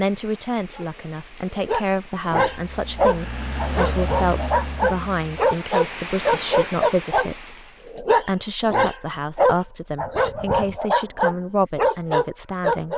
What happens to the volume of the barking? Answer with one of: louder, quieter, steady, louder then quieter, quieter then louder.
steady.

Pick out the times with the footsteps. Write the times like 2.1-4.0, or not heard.
not heard.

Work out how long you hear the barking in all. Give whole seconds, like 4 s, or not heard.
12 s.